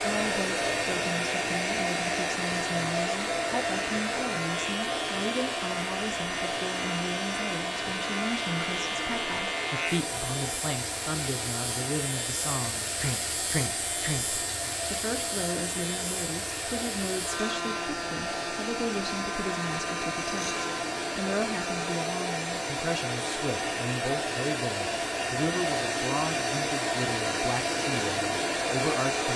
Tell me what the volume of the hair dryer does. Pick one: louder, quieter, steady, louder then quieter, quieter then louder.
quieter then louder.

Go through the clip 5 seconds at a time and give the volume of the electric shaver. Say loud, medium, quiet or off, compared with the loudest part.
loud, loud, loud, loud, loud, off.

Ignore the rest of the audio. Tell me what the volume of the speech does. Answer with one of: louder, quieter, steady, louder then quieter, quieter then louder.
steady.